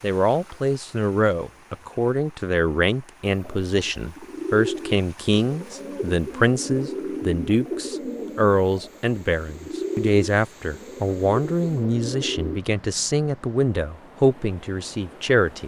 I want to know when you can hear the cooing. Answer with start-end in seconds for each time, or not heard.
3.2-12.6.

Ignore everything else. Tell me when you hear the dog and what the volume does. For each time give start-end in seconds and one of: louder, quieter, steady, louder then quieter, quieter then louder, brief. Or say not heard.
not heard.